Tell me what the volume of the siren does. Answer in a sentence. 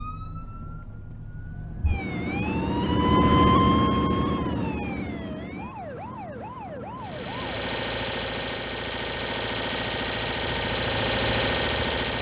The volume of the siren goes up, then down.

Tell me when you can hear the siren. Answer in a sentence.
The siren can be heard from 0.0 to 7.7 s.